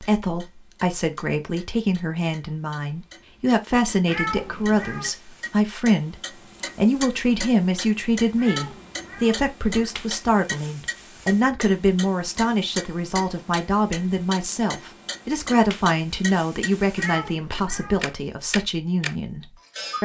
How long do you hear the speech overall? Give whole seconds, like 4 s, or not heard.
20 s.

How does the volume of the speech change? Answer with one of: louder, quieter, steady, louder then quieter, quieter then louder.
steady.